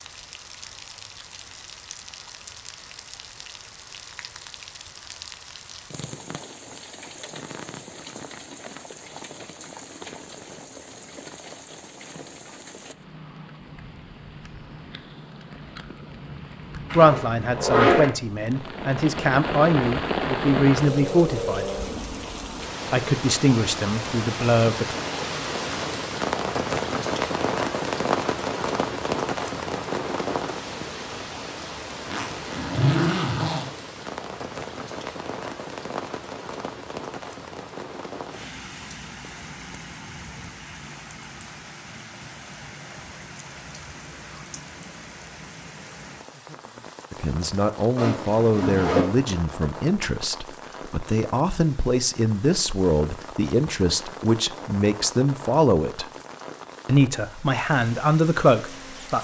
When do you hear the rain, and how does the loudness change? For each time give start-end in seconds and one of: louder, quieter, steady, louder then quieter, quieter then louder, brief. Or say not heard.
0.0-59.1 louder then quieter.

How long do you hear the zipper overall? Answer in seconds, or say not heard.
4 s.